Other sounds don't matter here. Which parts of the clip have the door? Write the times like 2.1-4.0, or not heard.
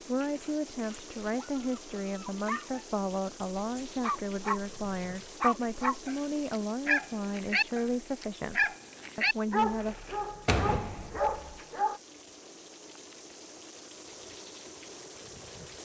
10.4-11.6.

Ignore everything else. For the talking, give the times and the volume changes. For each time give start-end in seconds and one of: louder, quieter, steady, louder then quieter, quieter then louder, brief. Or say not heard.
0.1-10.0 steady.